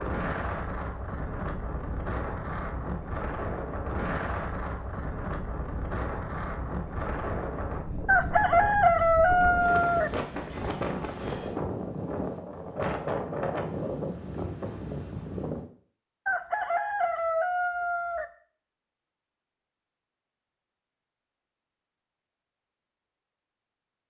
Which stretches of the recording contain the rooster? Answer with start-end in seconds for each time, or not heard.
8.1-10.1, 16.2-18.2.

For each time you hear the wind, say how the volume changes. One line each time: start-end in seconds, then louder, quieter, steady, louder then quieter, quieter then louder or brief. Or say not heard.
0.0-15.7 steady.